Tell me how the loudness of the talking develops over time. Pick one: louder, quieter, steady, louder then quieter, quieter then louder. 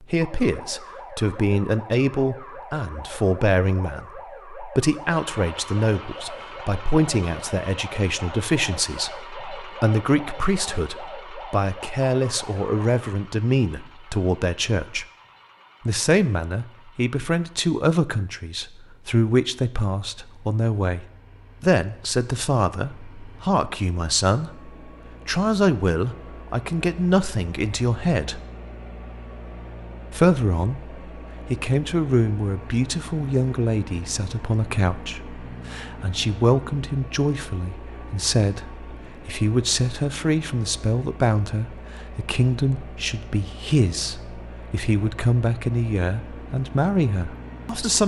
steady.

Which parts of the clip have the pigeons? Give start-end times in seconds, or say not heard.
not heard.